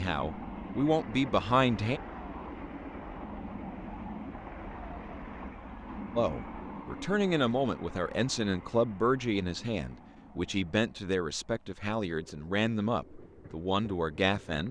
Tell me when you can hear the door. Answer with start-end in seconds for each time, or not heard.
not heard.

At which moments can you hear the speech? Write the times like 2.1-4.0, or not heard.
0.0-2.0, 6.2-14.6.